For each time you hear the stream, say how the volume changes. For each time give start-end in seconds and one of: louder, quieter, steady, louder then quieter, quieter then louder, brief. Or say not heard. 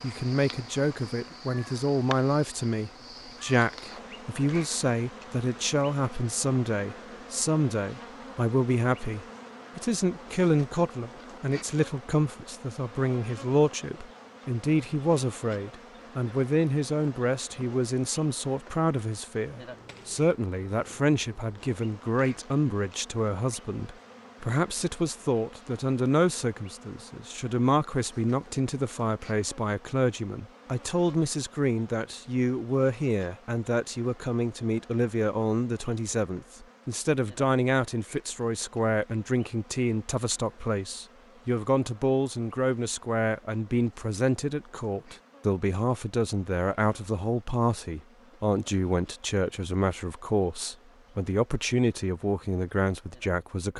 not heard.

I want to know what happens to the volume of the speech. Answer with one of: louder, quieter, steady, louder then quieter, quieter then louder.
steady.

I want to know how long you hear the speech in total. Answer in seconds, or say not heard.
54 s.